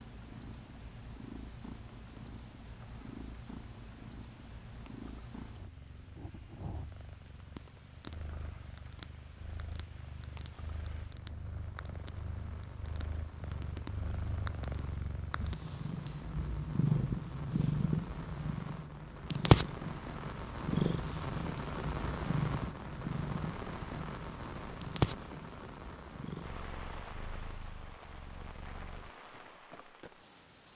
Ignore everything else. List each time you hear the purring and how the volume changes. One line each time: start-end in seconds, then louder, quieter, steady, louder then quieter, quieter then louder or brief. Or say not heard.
0.0-29.1 louder then quieter.